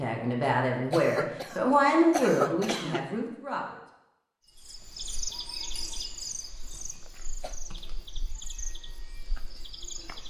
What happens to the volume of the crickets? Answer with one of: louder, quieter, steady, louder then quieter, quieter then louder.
quieter.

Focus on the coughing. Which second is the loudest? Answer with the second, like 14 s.
2 s.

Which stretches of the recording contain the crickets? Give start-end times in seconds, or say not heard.
4.5-10.2.